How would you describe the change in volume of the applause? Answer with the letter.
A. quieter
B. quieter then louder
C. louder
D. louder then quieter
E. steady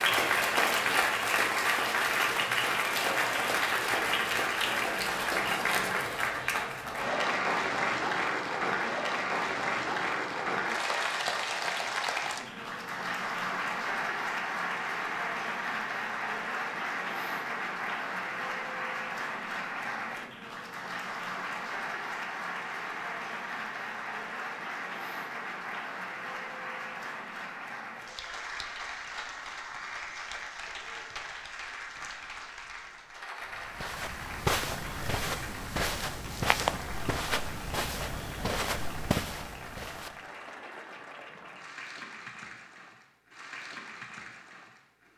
A.